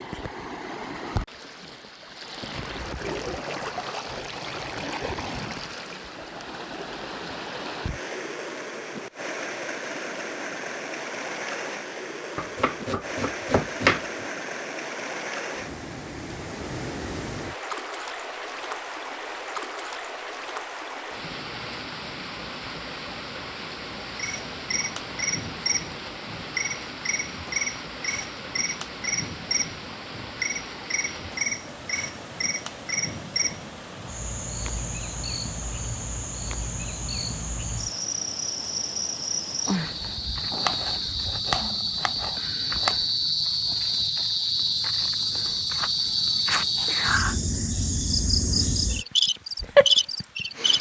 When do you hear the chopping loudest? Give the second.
14 s.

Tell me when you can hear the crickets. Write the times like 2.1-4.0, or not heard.
24.1-50.7.